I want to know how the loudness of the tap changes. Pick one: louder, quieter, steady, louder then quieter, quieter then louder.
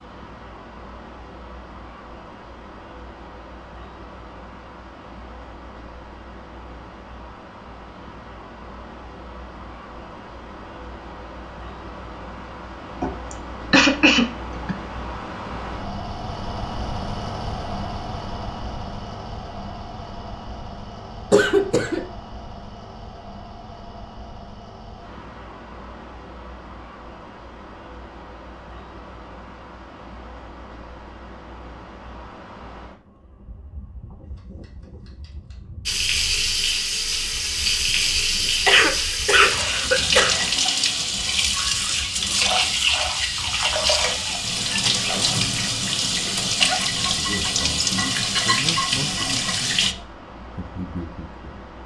steady.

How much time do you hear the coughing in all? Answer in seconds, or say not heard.
4 s.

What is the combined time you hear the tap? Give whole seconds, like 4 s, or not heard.
14 s.